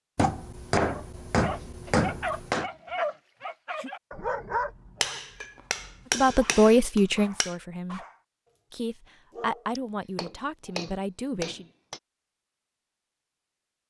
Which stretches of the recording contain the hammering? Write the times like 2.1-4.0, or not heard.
0.1-2.7, 5.0-7.5, 9.8-12.0.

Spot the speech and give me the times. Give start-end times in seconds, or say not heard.
6.1-8.1, 8.7-11.7.